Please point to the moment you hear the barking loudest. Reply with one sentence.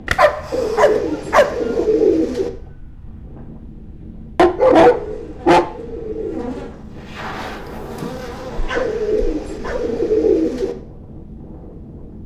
The volume of the barking peaks at 5 seconds.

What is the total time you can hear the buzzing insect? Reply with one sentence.
The buzzing insect can be heard for 4 seconds in total.